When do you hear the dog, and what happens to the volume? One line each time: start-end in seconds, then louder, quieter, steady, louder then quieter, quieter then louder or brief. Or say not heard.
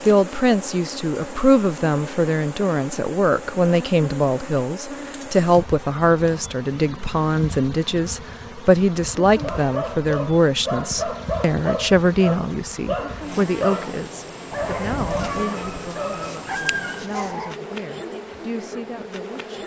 9.4-17.6 steady.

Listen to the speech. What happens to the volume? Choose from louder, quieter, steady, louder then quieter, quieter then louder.
quieter.